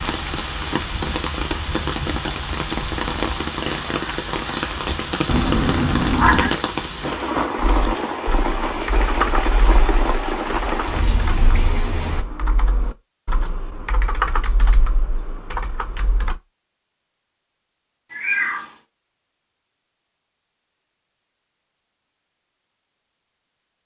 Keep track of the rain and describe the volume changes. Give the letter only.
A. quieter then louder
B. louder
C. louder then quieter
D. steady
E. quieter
D.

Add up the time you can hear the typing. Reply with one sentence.
The typing can be heard for 9 seconds in total.